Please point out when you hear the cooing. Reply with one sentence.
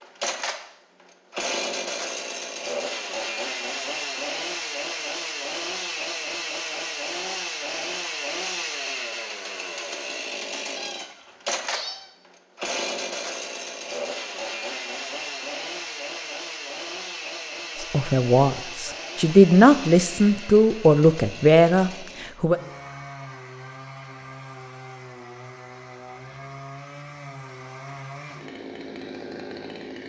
The cooing can't be heard in this clip.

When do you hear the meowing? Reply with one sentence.
The meowing can be heard from 10.8 to 12.1 s.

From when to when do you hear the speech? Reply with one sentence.
The speech can be heard from 17.8 to 22.6 s.